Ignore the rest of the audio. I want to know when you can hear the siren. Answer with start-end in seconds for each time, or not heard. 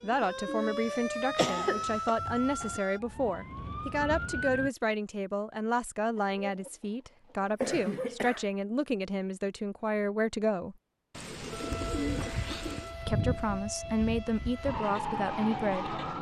0.0-4.7, 11.5-16.1.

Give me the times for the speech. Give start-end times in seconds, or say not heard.
0.0-10.8, 13.0-15.9.